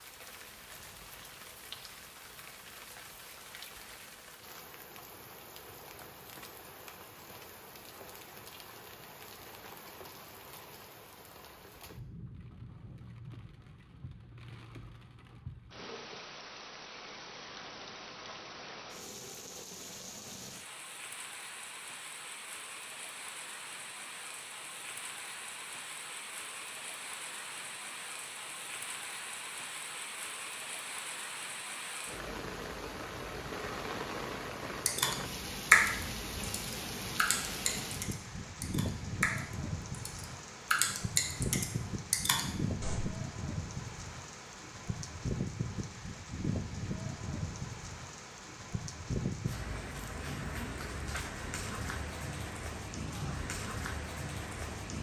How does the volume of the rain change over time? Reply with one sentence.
The volume of the rain goes up.